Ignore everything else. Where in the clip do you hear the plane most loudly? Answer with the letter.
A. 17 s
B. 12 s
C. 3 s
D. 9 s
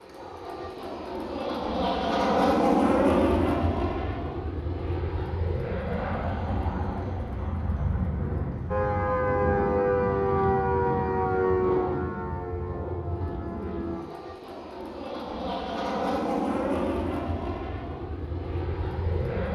C.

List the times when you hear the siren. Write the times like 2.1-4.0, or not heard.
8.7-14.1.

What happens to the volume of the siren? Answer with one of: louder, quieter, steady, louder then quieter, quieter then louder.
quieter.